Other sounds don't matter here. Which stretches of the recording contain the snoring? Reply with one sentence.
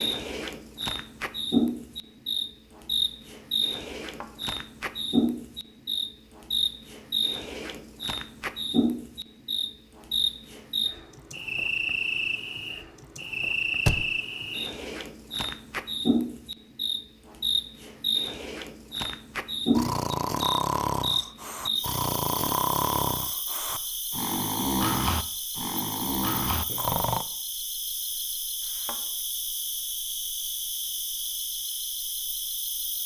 The snoring can be heard from 19.8 to 27.2 s.